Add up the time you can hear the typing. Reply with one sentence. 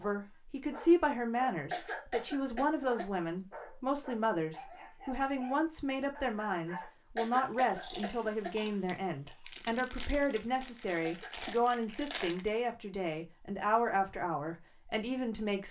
The typing can't be heard in this clip.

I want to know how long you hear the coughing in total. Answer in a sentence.
You can hear the coughing for 4 seconds altogether.